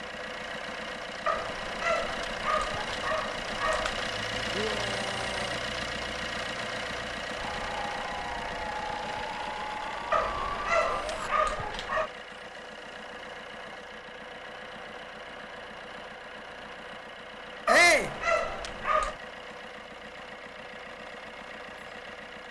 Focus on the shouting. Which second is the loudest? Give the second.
18 s.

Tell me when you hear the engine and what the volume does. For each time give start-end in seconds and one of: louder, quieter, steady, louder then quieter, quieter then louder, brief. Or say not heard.
0.0-22.4 quieter.